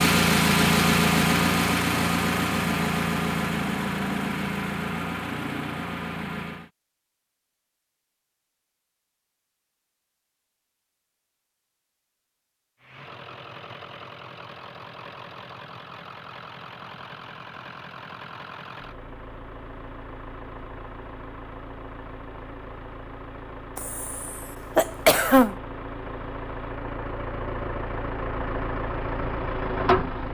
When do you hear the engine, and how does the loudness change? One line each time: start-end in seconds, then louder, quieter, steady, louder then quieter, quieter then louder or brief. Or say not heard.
0.0-6.7 quieter
12.8-30.2 louder.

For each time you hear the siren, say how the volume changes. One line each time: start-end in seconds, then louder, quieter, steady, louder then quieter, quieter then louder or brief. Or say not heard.
not heard.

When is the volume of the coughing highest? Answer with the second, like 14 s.
25 s.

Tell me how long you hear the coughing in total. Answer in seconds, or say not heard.
2 s.